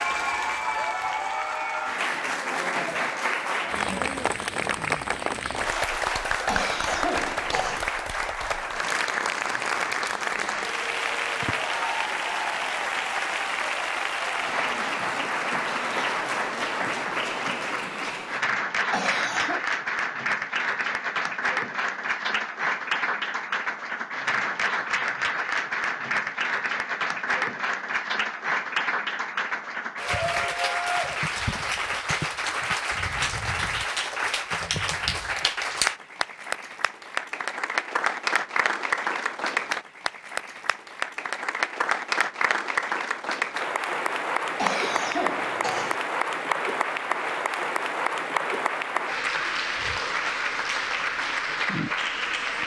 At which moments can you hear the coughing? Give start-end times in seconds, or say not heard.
6.5-7.8, 18.9-19.6, 44.5-46.0.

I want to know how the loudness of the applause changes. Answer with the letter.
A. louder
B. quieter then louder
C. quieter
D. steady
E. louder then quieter
D.